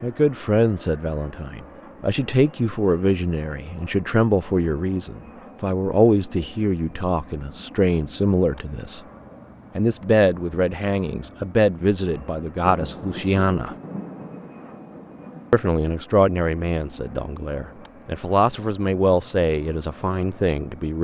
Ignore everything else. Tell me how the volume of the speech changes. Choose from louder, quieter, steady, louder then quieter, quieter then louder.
steady.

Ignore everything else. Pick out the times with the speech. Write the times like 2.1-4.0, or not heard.
0.0-9.0, 9.8-13.8, 15.5-20.9.